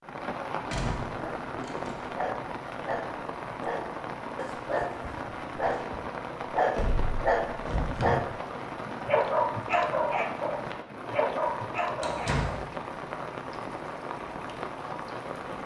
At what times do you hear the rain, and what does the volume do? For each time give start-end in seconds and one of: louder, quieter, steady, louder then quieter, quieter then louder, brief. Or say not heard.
0.0-15.6 steady.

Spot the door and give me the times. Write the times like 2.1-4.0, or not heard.
0.7-2.0, 6.8-8.3, 12.0-12.6.